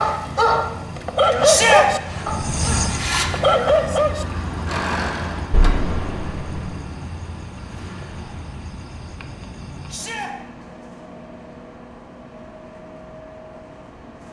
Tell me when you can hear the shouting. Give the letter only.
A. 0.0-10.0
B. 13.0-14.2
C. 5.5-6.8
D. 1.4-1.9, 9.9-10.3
D.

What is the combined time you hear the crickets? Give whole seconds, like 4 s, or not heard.
10 s.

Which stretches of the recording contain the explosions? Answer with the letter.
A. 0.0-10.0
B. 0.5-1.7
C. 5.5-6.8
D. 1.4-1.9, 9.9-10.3
C.